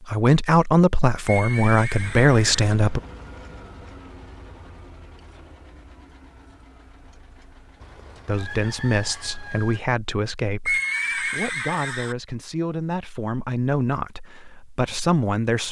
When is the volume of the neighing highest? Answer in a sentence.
The volume of the neighing peaks at 11 seconds.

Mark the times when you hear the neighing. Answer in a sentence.
The neighing can be heard from 1.2 to 2.6 s and from 10.7 to 12.2 s.